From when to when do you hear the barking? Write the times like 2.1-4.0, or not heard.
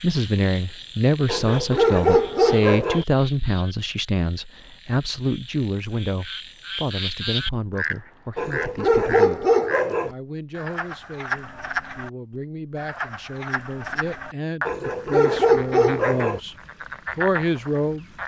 1.2-3.0, 8.3-10.1, 14.7-16.4.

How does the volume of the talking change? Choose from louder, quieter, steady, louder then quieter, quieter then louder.
quieter then louder.